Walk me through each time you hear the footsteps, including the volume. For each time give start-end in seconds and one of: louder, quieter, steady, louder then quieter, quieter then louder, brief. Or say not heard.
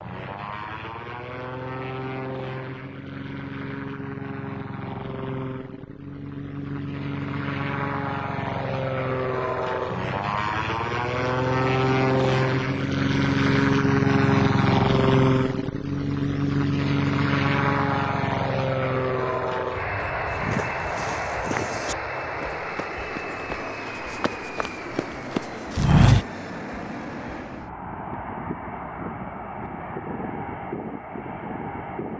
20.2-26.2 quieter then louder.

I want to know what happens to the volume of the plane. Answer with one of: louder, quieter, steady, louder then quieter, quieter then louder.
louder then quieter.